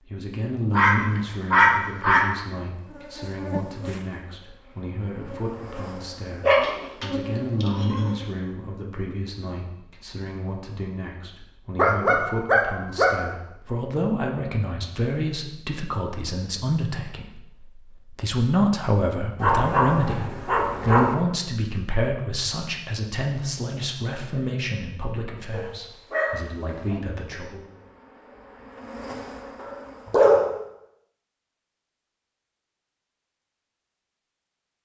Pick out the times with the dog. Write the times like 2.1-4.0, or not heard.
0.7-2.3, 6.4-8.1, 11.8-13.1, 19.4-21.1, 25.5-27.0, 29.6-30.5.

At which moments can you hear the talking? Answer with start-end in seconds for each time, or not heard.
0.0-27.6.